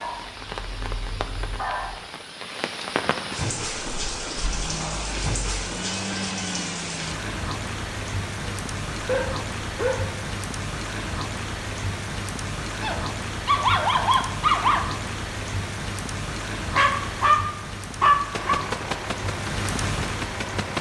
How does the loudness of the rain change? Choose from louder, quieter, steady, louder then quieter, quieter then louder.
steady.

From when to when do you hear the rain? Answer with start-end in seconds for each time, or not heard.
0.0-20.7.